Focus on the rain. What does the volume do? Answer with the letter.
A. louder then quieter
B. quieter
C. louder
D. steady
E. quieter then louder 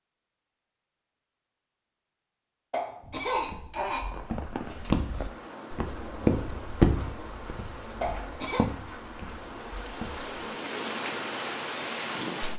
C.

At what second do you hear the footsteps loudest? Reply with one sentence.
The volume of the footsteps peaks at 7 seconds.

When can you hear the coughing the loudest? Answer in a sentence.
The volume of the coughing peaks at 3 seconds.